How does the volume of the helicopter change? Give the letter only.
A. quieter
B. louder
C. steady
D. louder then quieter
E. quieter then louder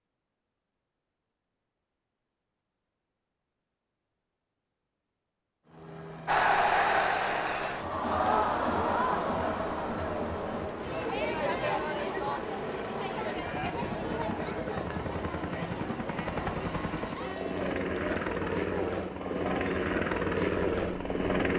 B.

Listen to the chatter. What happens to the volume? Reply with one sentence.
The loudness of the chatter goes down.